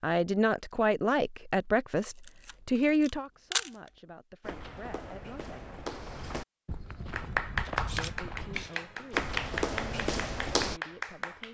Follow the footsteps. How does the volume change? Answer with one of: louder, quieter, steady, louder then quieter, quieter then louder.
louder.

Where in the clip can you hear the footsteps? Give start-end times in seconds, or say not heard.
4.4-10.8.